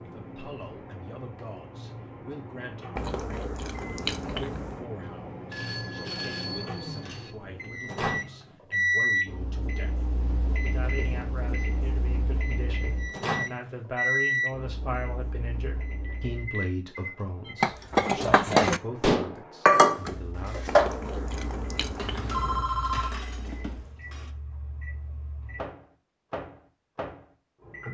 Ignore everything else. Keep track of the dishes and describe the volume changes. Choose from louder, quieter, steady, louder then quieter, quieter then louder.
quieter.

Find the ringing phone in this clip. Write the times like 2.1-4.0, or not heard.
5.5-7.3, 16.0-16.6, 22.0-23.1.